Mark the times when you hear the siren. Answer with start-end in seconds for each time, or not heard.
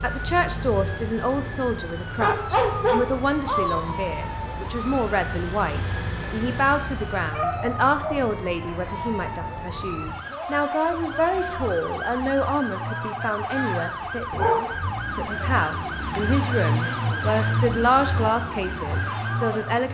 0.0-19.8.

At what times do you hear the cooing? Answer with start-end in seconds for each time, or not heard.
not heard.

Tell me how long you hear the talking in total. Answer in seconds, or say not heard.
20 s.